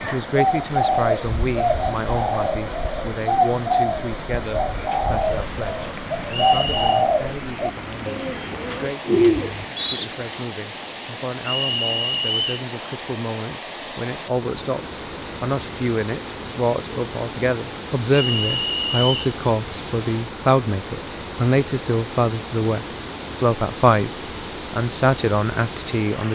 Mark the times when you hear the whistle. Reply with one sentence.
The whistle can be heard from 6.2 to 7.0 s, from 11.4 to 12.7 s and from 18.1 to 19.4 s.